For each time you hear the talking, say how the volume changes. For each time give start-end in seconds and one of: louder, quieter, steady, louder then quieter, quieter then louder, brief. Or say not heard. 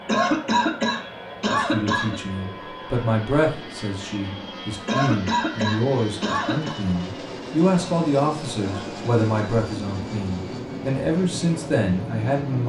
1.6-12.6 steady.